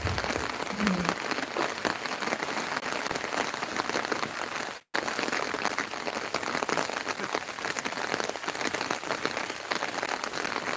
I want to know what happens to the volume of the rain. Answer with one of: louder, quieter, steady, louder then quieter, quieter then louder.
steady.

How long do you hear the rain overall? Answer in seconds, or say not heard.
11 s.